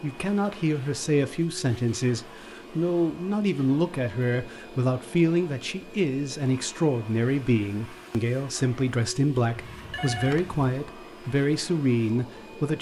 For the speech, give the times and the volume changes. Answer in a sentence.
You can hear the speech from 0.0 to 12.7 s, at a steady volume.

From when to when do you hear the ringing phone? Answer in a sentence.
You can hear the ringing phone from 9.6 to 10.6 s.